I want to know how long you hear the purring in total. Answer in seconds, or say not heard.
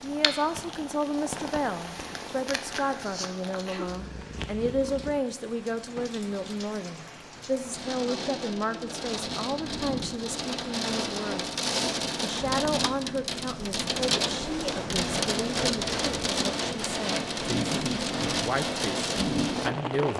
5 s.